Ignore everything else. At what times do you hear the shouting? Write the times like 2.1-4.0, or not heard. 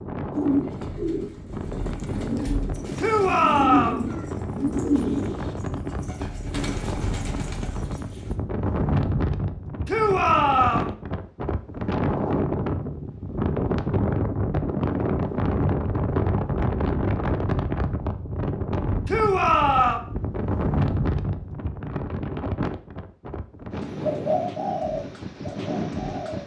3.0-4.0, 9.8-10.9, 19.1-20.0.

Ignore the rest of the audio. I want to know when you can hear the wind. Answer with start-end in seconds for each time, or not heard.
0.0-26.4.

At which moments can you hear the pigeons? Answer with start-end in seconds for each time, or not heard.
0.3-8.3, 24.0-26.4.